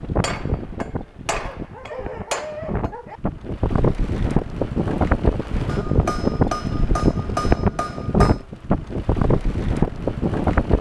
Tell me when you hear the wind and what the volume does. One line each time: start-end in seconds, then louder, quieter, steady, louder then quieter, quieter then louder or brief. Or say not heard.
0.0-10.7 louder.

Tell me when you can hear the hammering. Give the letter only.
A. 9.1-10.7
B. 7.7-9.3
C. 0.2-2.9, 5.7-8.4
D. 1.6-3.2
C.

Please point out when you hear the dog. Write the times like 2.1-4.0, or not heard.
1.6-3.2.